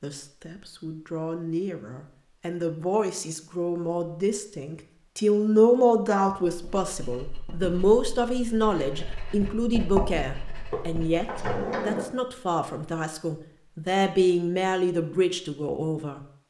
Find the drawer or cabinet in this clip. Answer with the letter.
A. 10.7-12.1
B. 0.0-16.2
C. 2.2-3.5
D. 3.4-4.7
A.